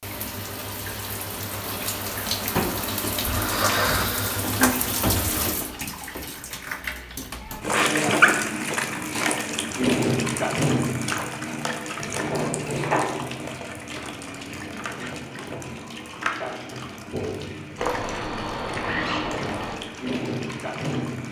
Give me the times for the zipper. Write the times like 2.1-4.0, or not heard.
3.5-4.0, 17.8-19.8.